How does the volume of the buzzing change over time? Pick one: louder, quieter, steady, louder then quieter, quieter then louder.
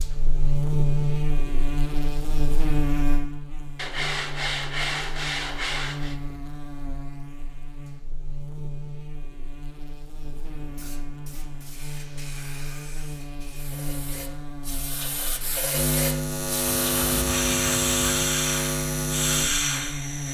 quieter then louder.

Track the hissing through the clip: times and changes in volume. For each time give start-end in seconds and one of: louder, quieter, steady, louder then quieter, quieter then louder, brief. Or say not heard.
10.2-20.2 louder.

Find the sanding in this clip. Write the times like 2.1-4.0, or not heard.
3.8-6.2, 16.8-18.1.